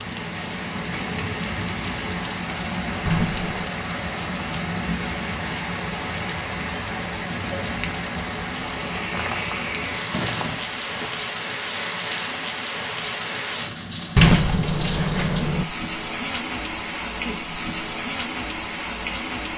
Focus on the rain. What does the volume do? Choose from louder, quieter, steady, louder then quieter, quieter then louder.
steady.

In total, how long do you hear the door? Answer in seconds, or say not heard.
4 s.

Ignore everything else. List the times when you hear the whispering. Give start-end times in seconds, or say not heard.
not heard.